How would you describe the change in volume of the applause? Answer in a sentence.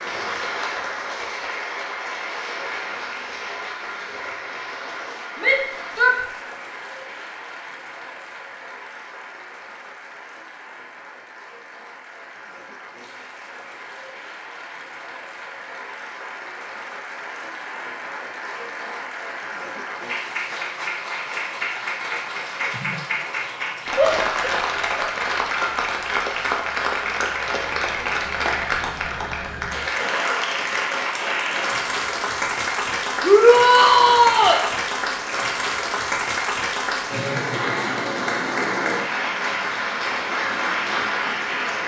The volume of the applause goes down, then up.